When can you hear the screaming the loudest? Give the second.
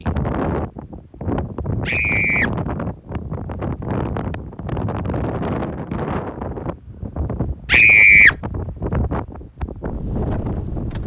8 s.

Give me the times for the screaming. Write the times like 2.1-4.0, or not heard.
1.9-2.5, 7.7-8.3.